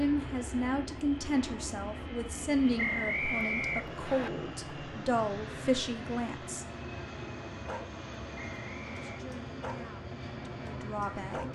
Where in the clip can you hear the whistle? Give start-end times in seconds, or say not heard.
2.8-4.3, 8.4-9.2.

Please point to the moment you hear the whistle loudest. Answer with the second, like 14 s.
3 s.